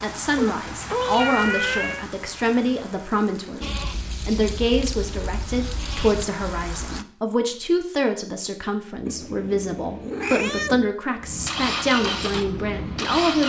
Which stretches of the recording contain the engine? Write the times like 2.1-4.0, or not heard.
11.2-13.4.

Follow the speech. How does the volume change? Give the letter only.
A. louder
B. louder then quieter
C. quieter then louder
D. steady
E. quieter
D.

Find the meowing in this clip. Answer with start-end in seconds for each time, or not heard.
0.3-2.0, 9.1-10.9.